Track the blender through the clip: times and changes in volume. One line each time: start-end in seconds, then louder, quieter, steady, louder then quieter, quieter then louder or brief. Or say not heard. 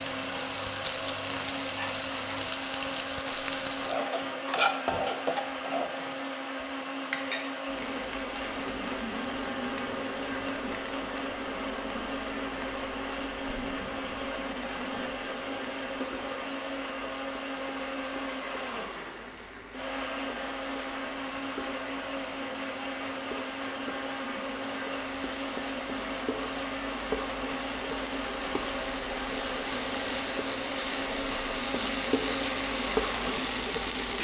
0.0-34.1 steady.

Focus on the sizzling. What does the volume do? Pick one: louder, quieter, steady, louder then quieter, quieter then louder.
quieter then louder.